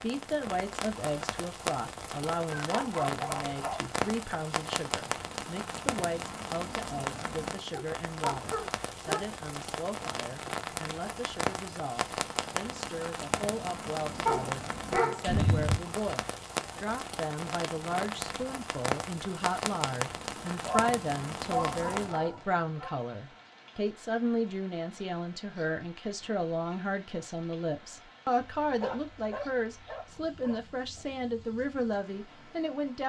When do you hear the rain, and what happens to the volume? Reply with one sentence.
The rain can be heard from 0.0 to 33.0 s, getting quieter.